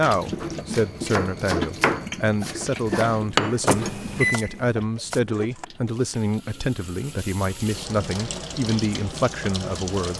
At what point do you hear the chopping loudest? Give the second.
2 s.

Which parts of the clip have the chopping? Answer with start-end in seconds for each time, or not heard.
0.4-5.7.